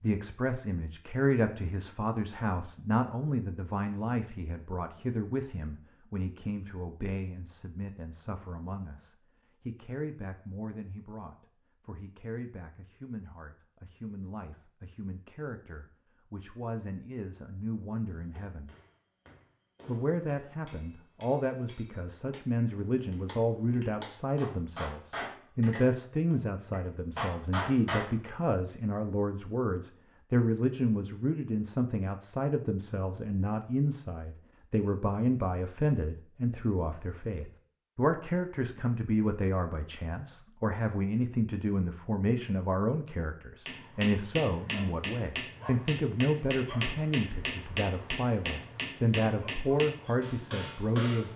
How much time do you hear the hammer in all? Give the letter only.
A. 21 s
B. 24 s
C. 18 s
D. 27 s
C.